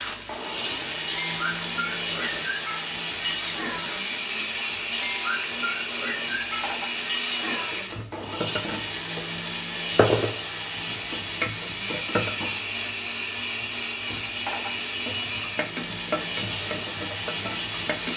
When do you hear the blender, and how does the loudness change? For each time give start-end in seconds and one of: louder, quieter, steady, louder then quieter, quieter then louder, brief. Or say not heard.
0.0-18.1 steady.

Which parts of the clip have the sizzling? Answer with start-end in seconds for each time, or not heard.
0.0-18.1.